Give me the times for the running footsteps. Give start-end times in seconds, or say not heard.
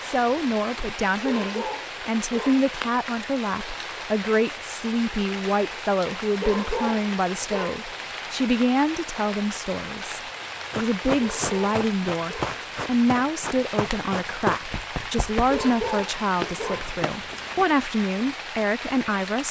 10.7-17.6.